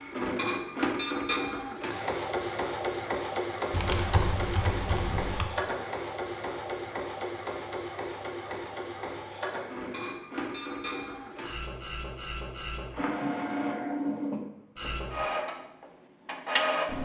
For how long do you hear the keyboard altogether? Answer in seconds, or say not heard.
2 s.